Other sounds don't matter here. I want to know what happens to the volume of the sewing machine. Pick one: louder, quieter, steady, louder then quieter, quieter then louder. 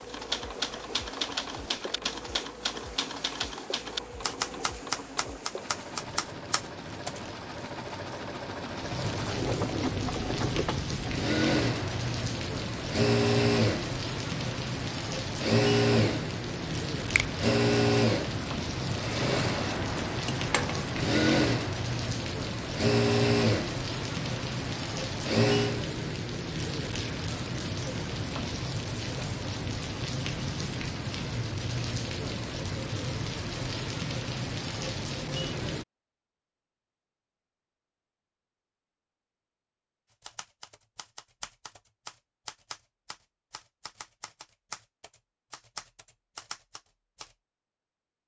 louder.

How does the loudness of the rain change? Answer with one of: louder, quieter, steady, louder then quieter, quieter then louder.
louder.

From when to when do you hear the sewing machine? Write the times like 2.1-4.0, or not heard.
0.0-25.8.